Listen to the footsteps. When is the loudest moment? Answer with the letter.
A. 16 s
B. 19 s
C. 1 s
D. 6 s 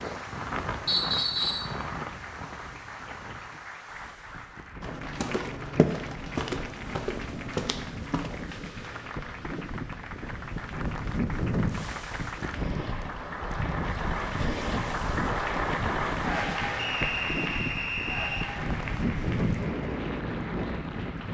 D.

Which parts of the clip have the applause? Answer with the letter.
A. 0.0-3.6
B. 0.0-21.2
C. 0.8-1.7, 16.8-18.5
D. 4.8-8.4
B.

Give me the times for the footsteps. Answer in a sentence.
You can hear the footsteps from 4.8 to 8.4 s.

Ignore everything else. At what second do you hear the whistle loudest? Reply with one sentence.
The loudest moment of the whistle is at 1 second.